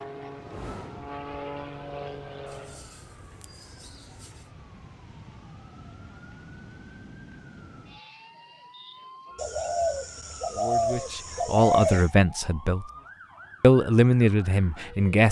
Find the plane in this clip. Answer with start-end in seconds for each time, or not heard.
0.0-3.0.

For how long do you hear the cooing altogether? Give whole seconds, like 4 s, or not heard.
5 s.